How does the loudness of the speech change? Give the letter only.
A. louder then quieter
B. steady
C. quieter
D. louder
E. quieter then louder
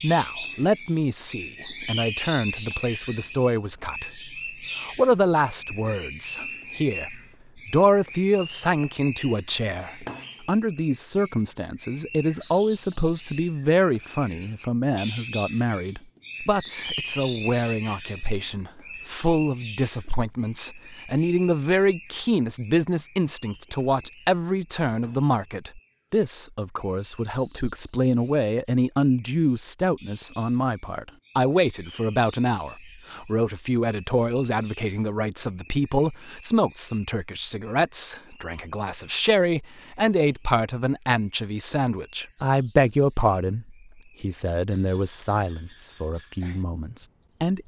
B.